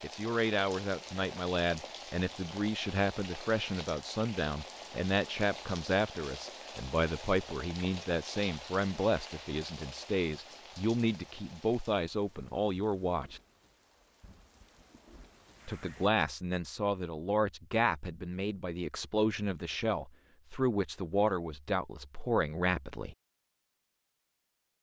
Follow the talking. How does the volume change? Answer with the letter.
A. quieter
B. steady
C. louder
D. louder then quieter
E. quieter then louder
B.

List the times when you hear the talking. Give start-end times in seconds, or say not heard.
0.0-13.4, 15.7-23.1.